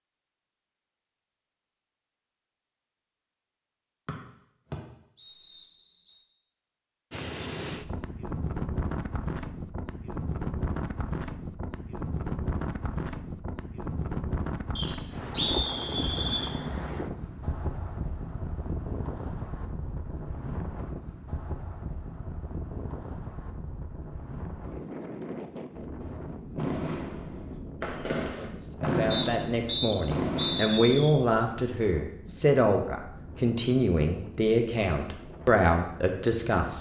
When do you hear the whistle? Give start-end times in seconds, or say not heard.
4.0-6.2, 14.8-16.5, 29.1-31.1.